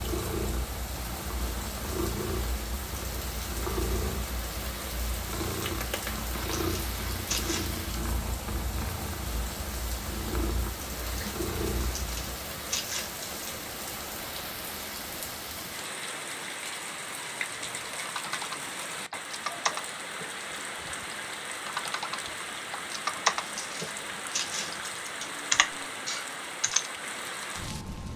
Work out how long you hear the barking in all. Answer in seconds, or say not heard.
not heard.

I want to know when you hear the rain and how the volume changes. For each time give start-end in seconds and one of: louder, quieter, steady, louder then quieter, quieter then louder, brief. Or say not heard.
0.0-28.1 steady.